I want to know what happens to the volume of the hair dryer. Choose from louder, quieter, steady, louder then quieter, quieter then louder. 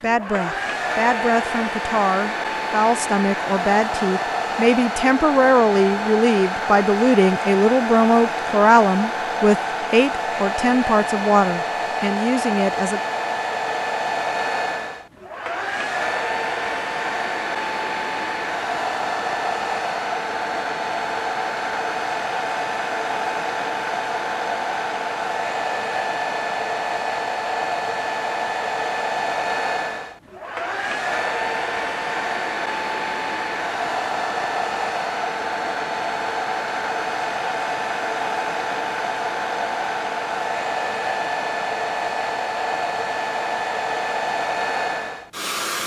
steady.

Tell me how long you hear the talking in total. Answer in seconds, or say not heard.
13 s.